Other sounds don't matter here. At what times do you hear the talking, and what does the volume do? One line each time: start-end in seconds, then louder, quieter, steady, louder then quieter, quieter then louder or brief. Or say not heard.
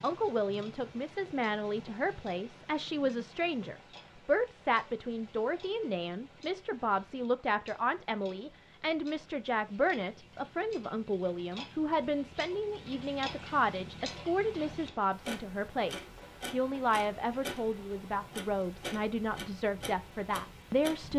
0.0-21.1 steady.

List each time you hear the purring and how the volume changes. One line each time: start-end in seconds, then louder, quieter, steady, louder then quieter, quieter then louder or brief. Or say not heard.
not heard.